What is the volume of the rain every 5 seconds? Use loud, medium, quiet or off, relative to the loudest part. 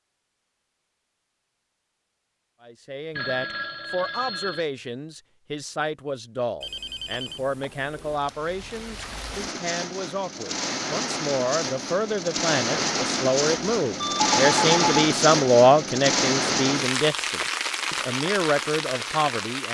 off, medium, loud, loud.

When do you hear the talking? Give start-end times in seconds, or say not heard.
2.6-19.6.